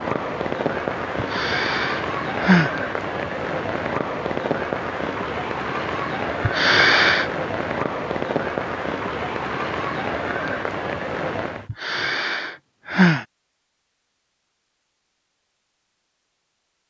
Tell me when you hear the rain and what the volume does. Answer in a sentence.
You can hear the rain from 0.0 to 11.7 s, at a steady volume.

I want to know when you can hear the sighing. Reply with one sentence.
You can hear the sighing from 1.1 to 2.7 s, from 6.4 to 7.3 s and from 11.7 to 13.2 s.